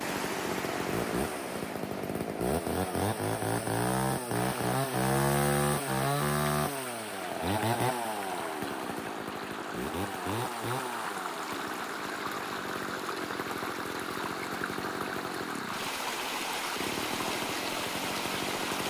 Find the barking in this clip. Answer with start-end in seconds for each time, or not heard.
not heard.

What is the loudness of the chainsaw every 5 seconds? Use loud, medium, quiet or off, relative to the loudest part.
loud, loud, medium, medium.